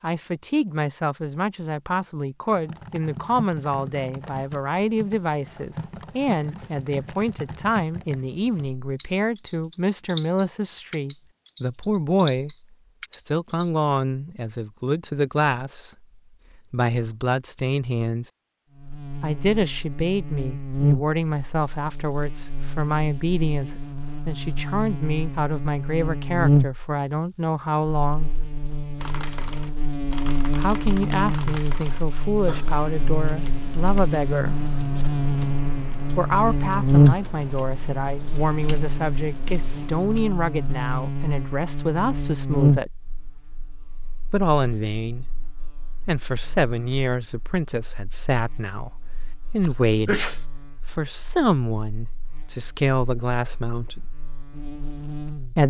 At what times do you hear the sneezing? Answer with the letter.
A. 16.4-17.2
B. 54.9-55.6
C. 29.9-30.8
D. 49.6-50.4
D.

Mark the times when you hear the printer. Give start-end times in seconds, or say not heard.
not heard.